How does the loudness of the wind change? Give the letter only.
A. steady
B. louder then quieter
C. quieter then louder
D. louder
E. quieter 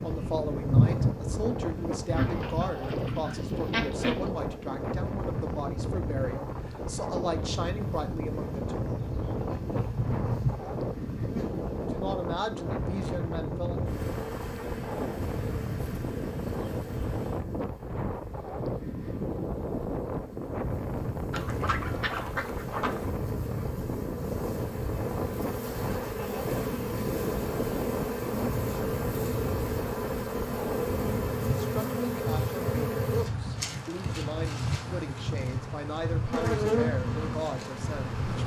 A.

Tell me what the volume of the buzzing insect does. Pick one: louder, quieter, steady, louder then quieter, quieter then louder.
quieter then louder.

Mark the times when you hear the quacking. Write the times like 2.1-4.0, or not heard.
2.0-4.2, 21.3-23.1.